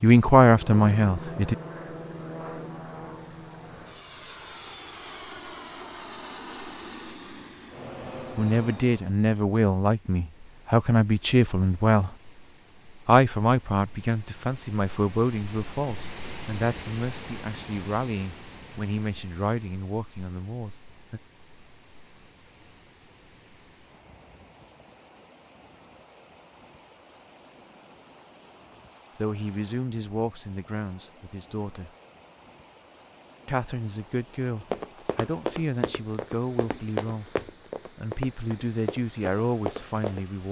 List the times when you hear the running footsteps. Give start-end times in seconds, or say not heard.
34.6-40.2.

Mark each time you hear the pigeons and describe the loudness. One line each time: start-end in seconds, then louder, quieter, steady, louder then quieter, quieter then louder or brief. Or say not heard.
not heard.